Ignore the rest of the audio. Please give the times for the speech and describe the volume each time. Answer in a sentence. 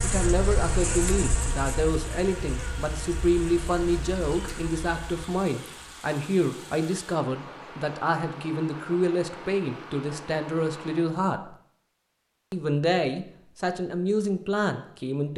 You can hear the speech from 0.0 to 11.6 s, at a steady volume; and briefly from 12.5 to 15.3 s.